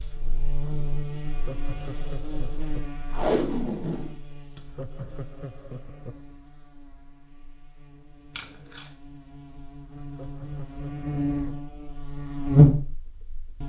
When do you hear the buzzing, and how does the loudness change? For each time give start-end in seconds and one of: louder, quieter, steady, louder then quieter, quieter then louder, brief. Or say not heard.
0.0-13.6 quieter then louder.